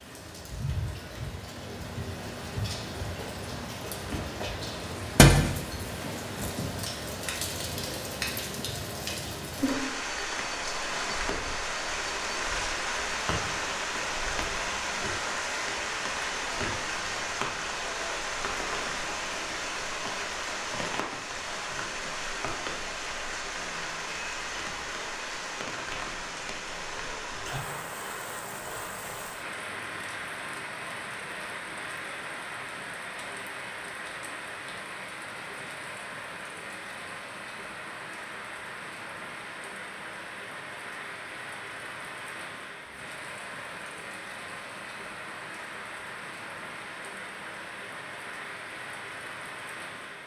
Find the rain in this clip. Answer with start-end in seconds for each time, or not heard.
0.0-50.2.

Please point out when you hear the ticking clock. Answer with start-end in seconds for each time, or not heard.
not heard.